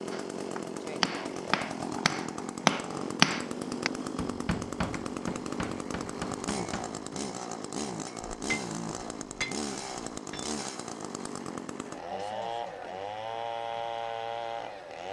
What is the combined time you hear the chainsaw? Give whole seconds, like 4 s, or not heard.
15 s.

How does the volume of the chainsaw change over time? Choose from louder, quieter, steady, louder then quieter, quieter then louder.
steady.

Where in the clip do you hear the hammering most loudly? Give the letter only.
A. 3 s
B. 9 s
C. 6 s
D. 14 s
A.